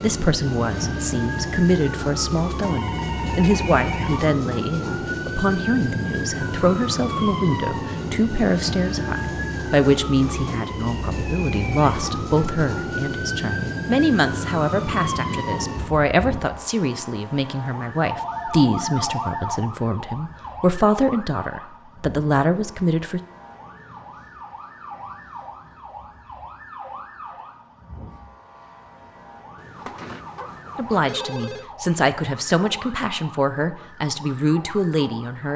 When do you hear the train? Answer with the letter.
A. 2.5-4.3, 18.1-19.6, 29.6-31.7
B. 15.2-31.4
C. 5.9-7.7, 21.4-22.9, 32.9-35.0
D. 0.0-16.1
D.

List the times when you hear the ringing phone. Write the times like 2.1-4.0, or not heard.
2.5-4.3, 18.1-19.6, 29.6-31.7.